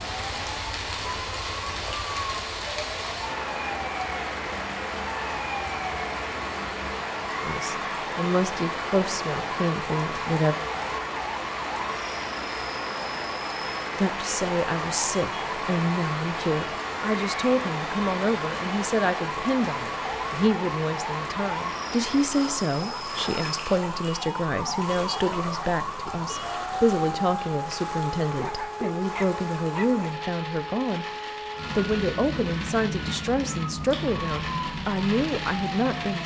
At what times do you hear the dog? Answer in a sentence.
You can hear the dog from 28.4 to 30.1 s.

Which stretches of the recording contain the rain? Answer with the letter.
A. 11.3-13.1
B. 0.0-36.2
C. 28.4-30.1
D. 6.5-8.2
B.